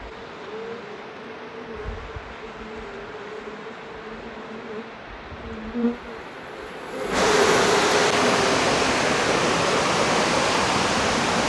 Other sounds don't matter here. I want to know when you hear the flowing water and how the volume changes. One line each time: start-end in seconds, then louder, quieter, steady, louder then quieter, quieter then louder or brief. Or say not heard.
0.0-11.4 louder.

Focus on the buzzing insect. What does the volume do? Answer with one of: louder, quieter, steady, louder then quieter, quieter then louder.
louder.